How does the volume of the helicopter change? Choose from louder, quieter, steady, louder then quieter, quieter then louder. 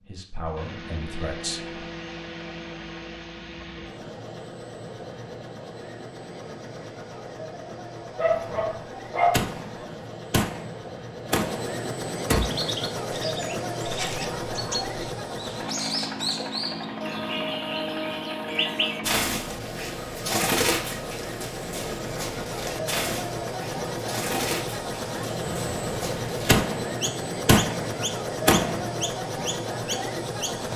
louder.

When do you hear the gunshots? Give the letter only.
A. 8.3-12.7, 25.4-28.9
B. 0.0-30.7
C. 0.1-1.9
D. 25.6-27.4
A.